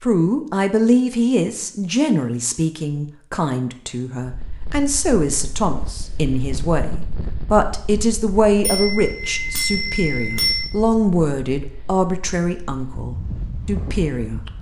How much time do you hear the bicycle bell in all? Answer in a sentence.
You can hear the bicycle bell for 2 seconds altogether.